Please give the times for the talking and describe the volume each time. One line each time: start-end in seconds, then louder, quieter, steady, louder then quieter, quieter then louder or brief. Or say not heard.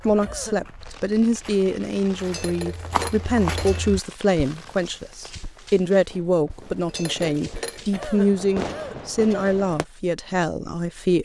0.1-11.1 steady.